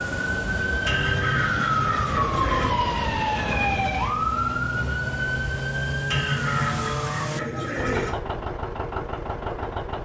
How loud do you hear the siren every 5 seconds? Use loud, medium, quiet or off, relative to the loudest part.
loud, medium.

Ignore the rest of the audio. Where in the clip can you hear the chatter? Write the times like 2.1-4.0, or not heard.
not heard.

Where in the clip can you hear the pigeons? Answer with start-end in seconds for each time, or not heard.
0.8-2.7, 6.1-8.1.